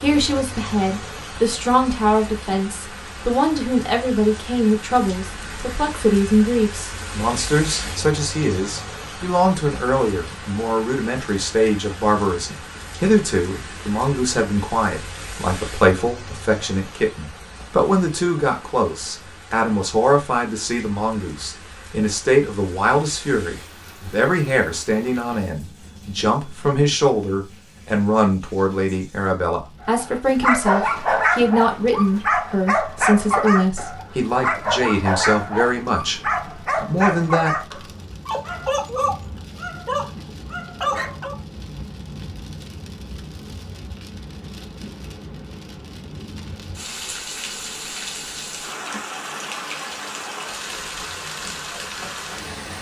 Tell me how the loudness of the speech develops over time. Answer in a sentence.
The loudness of the speech stays about the same.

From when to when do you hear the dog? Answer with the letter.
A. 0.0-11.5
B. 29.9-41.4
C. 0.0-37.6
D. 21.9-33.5
B.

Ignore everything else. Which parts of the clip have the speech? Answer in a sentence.
The speech can be heard from 0.0 to 37.6 s.